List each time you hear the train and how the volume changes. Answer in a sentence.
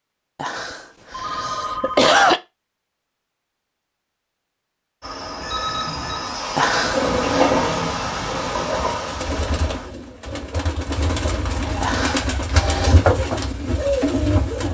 You can hear the train from 5.0 to 9.9 s, getting louder then quieter.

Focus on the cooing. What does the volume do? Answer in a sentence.
The loudness of the cooing goes up.